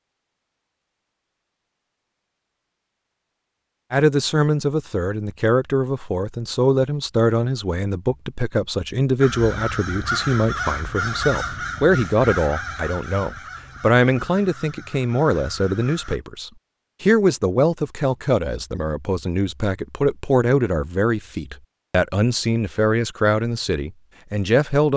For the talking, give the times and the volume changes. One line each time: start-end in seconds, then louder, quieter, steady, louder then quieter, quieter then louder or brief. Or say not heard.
3.9-24.9 steady.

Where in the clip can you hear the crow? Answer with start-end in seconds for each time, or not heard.
9.2-16.2.